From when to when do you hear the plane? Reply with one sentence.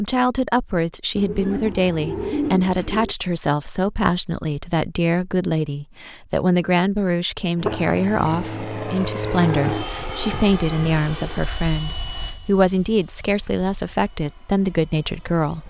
The plane can be heard from 7.5 to 15.6 s.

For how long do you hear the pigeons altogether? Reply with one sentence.
The pigeons can be heard for 4 seconds in total.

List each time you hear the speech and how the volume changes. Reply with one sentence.
You can hear the speech from 0.0 to 15.6 s, at a steady volume.